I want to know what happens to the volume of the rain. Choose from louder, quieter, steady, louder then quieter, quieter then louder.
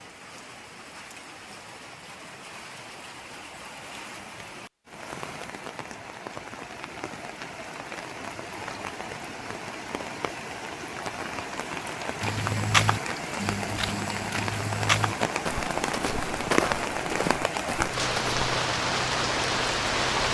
louder.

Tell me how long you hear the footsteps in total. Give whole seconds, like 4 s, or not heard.
6 s.